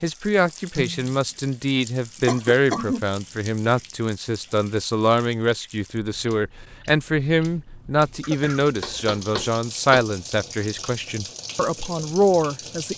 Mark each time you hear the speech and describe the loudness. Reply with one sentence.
You can hear the speech from 0.0 to 12.9 s, at a steady volume.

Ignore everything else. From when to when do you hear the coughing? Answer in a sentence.
The coughing can be heard from 2.2 to 3.0 s and from 8.2 to 9.2 s.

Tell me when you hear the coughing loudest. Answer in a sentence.
The loudest moment of the coughing is at 3 seconds.